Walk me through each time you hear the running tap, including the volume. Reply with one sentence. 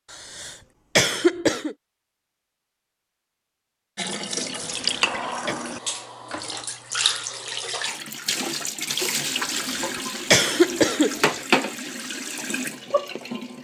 You can hear the running tap from 4.0 to 13.5 s, at a steady volume.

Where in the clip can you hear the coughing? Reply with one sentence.
The coughing can be heard from 0.1 to 1.8 s, from 4.6 to 5.5 s and from 9.7 to 11.4 s.